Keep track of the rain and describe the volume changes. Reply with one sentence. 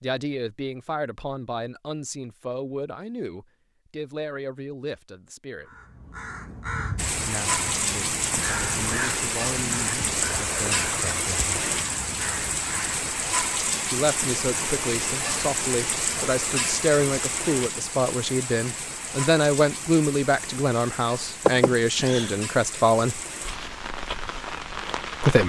The loudness of the rain goes down.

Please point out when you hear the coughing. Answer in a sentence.
The coughing can be heard from 21.4 to 22.4 s.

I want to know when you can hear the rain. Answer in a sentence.
You can hear the rain from 7.0 to 25.4 s.